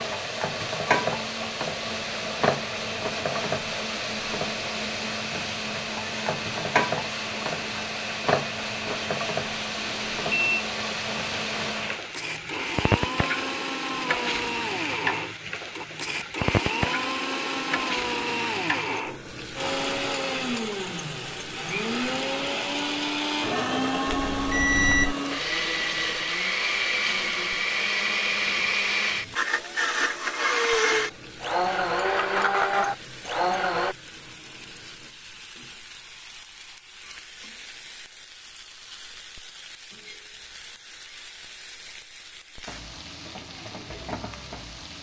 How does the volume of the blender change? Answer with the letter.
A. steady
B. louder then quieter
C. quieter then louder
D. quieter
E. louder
E.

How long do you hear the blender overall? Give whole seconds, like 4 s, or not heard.
34 s.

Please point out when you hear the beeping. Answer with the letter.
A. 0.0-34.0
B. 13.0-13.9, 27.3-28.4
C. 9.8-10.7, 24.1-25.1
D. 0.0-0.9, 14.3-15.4
C.